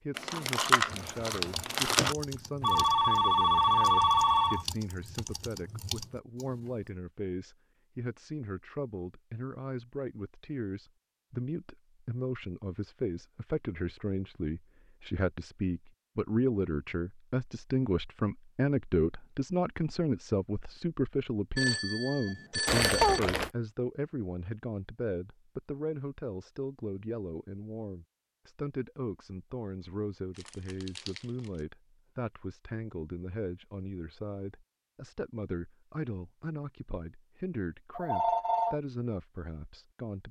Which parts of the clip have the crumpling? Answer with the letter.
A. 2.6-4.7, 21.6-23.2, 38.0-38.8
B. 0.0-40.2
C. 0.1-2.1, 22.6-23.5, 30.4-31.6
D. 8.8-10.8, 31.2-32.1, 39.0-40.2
C.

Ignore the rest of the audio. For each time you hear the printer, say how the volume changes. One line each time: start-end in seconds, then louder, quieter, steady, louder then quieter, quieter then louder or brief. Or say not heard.
not heard.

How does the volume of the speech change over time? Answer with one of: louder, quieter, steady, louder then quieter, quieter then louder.
louder then quieter.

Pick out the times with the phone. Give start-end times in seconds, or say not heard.
2.6-4.7, 21.6-23.2, 38.0-38.8.